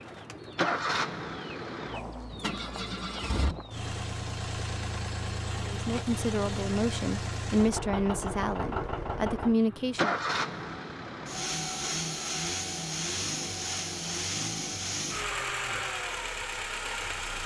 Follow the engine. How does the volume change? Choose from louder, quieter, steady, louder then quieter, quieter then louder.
steady.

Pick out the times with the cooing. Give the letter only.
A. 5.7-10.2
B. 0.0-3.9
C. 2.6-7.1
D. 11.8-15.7
B.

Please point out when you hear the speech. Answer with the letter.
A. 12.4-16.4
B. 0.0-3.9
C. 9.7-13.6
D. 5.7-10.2
D.